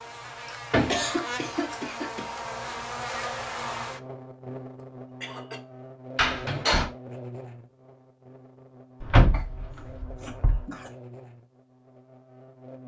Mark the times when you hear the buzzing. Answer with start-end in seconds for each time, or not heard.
0.0-12.8.